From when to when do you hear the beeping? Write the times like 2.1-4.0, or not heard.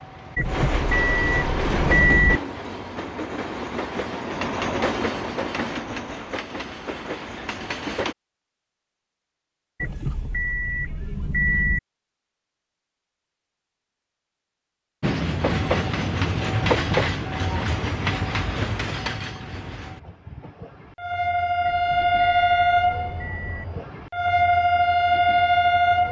0.3-2.4, 9.8-11.8, 21.6-23.6.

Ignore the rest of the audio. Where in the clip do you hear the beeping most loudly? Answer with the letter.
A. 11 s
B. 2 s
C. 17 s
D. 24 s
B.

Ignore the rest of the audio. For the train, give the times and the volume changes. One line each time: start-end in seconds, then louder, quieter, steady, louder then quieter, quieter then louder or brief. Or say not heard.
0.0-8.2 quieter
15.0-26.0 quieter then louder.